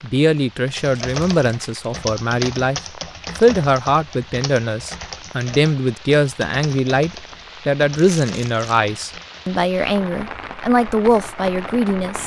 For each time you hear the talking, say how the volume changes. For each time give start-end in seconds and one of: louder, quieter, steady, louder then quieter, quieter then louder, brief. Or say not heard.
0.0-12.2 steady.